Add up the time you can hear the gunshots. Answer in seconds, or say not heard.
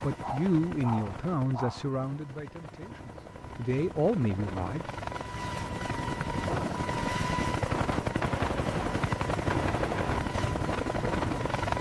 2 s.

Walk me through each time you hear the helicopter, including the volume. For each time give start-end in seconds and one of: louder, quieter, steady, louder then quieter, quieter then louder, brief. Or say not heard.
0.0-11.7 louder.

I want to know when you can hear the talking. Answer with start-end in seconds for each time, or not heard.
0.0-4.8.